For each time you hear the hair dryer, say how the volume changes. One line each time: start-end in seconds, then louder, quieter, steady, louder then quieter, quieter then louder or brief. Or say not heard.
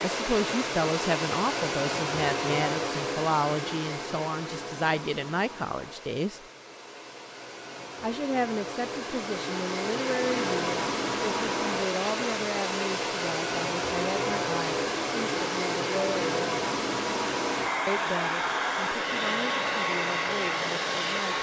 0.0-21.3 quieter then louder.